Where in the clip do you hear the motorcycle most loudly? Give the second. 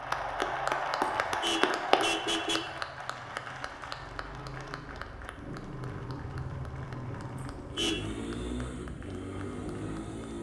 8 s.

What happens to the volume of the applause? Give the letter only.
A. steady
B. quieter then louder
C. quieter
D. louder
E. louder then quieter
C.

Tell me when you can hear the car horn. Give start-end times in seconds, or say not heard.
1.0-2.8, 7.5-8.1.